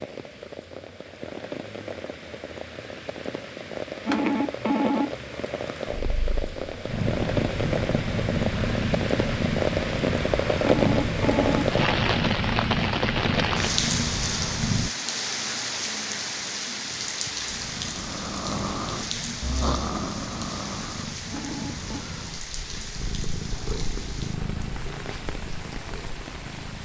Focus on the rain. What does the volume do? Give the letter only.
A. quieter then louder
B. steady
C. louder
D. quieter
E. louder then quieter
E.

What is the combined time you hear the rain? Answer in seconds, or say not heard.
27 s.